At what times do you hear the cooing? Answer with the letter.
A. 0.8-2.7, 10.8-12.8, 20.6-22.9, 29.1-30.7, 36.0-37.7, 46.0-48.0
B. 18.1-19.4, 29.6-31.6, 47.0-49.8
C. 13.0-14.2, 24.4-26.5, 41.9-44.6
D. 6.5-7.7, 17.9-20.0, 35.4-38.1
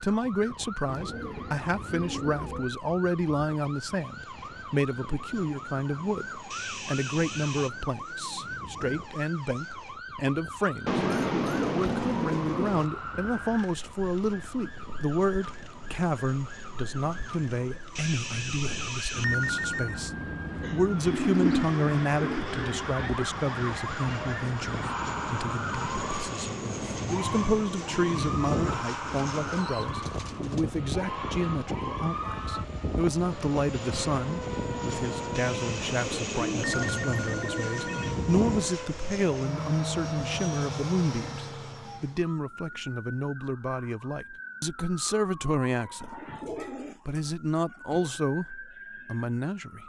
A.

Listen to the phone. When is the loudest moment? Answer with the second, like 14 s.
19 s.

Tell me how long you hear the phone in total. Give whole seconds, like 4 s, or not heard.
6 s.